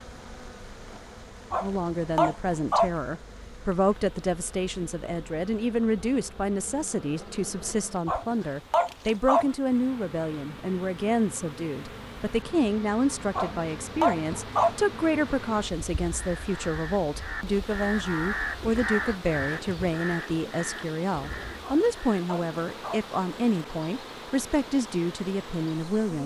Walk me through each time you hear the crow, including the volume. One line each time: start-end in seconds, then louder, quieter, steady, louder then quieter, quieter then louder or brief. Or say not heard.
16.0-22.2 louder then quieter.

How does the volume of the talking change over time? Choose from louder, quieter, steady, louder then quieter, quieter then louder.
steady.